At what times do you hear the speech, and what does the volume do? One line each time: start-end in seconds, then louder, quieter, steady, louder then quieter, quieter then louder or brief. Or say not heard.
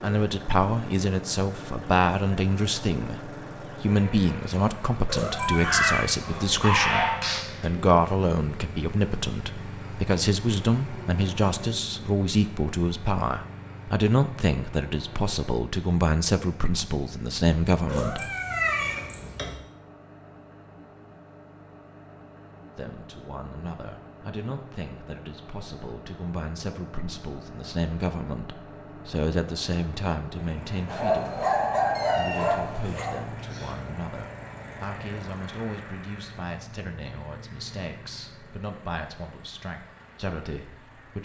0.0-18.2 steady
22.8-41.2 louder then quieter.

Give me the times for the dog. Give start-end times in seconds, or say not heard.
5.5-7.4, 30.9-33.2.